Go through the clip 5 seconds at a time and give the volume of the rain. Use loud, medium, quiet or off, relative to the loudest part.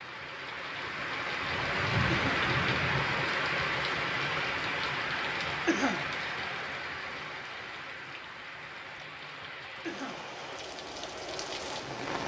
loud, medium, medium.